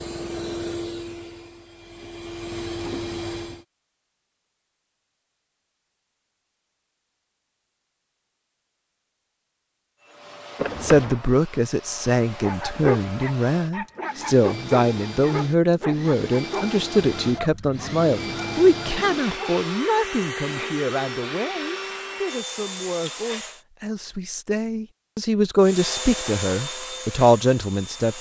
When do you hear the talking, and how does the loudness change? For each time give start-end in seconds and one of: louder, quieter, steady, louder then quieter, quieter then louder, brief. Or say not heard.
10.8-28.1 quieter then louder.